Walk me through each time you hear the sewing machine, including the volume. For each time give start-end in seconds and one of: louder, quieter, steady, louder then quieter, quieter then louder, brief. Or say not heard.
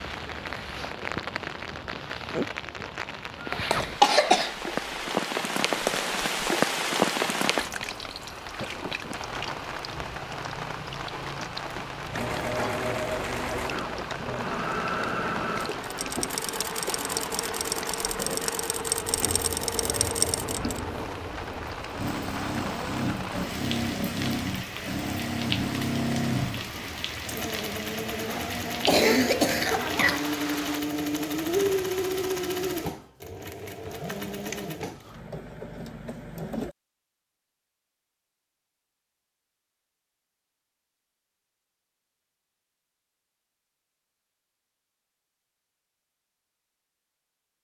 12.1-36.8 steady.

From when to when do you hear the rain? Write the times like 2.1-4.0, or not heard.
0.0-30.8.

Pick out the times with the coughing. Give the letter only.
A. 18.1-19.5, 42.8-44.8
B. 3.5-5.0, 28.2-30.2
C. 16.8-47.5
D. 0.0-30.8
B.